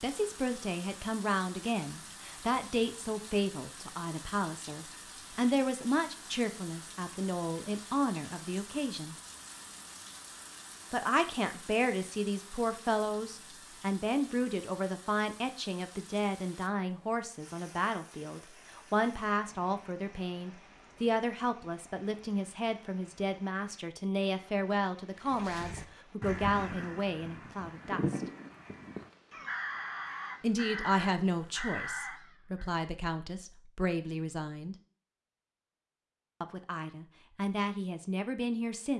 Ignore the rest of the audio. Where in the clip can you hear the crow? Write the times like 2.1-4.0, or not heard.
25.1-32.7.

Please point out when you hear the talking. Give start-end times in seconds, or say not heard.
0.0-9.2, 10.9-28.2, 30.4-34.8, 36.4-38.9.